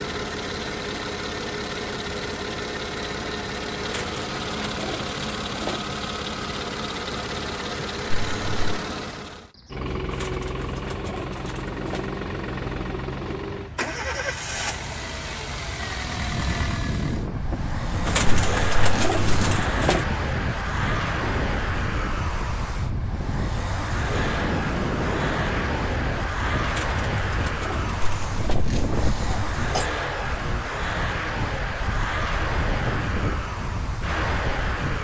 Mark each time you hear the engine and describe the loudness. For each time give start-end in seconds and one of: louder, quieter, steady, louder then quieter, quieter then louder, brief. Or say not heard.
0.0-34.9 steady.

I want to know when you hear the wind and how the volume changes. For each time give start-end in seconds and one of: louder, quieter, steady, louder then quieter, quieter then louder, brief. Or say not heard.
15.9-34.9 steady.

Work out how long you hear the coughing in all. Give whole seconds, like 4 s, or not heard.
4 s.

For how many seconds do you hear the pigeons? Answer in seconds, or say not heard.
8 s.